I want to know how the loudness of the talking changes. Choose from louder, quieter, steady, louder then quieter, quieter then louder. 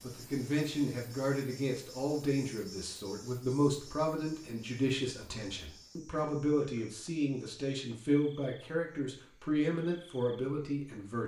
steady.